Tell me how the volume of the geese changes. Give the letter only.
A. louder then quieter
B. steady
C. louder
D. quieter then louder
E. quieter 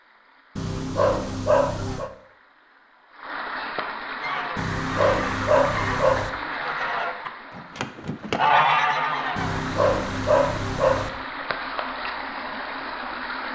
C.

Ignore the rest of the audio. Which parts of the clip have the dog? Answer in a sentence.
You can hear the dog from 0.6 to 2.1 s, from 4.5 to 6.3 s and from 9.3 to 11.1 s.